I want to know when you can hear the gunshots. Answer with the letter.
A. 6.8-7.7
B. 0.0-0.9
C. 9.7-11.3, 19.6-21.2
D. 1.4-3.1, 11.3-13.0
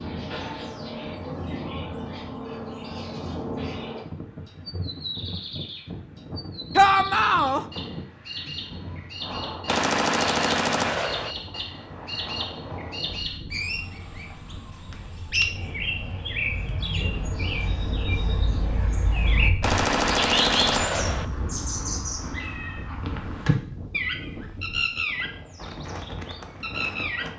C.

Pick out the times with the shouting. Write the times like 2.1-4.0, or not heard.
6.8-7.7.